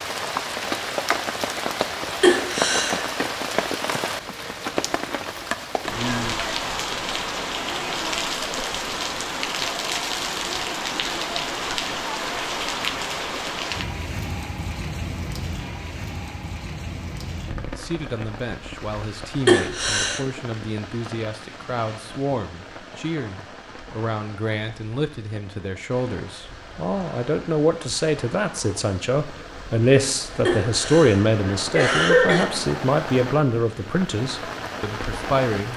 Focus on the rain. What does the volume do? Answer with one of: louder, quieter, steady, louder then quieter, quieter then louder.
quieter then louder.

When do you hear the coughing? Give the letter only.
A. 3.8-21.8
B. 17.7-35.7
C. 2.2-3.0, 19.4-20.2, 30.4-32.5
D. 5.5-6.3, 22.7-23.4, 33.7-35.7
C.